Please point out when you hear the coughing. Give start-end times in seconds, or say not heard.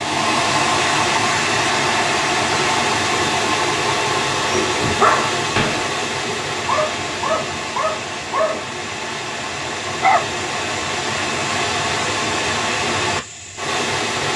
not heard.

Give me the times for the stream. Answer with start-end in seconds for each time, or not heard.
0.0-14.3.